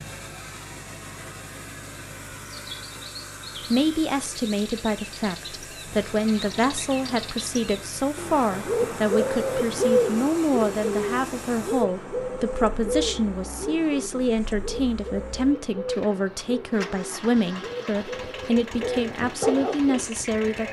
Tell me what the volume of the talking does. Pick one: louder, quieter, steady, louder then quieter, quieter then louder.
steady.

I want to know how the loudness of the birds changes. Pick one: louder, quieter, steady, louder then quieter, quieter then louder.
louder then quieter.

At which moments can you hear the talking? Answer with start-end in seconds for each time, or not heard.
3.7-20.6.